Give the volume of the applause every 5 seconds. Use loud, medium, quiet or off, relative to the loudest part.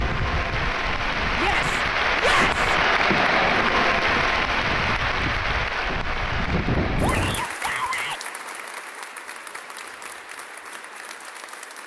loud, medium, quiet.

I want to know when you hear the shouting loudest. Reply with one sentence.
The loudest moment of the shouting is at 2 seconds.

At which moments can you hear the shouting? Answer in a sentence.
You can hear the shouting from 1.4 to 2.7 s and from 7.0 to 8.2 s.